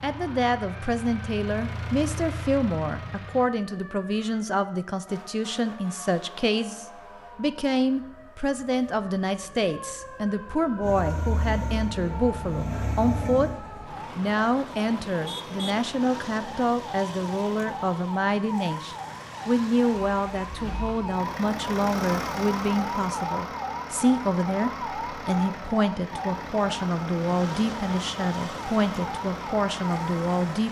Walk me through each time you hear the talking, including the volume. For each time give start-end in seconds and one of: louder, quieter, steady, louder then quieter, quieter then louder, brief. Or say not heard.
0.0-30.6 steady.